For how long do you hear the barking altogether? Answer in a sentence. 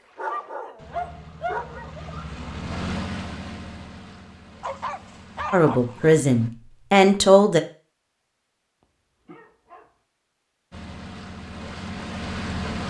You can hear the barking for 5 seconds altogether.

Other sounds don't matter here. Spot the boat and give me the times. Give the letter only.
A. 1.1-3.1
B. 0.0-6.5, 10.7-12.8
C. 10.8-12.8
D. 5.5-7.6
B.